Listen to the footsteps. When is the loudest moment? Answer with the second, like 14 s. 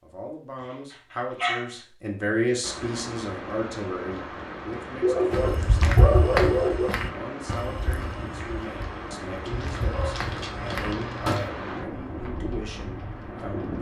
6 s.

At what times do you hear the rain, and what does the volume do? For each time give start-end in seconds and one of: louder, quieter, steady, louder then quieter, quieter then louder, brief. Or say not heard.
2.6-13.7 steady.